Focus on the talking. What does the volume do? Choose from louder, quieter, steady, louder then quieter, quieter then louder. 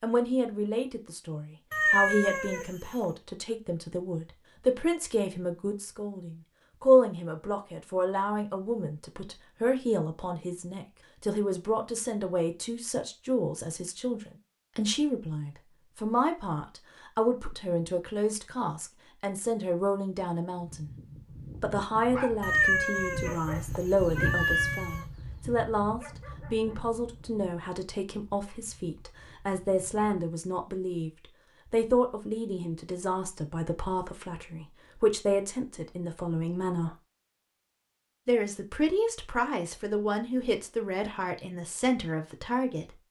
steady.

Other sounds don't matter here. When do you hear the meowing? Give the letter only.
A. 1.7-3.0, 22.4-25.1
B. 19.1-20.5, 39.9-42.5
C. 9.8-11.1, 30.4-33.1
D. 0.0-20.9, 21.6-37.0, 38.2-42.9
A.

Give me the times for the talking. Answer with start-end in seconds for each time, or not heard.
0.0-20.9, 21.6-37.0, 38.2-42.9.